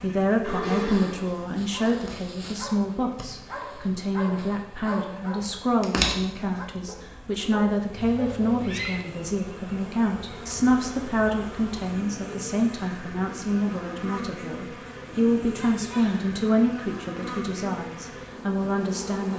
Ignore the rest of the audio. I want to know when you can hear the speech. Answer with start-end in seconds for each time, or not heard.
0.0-19.3.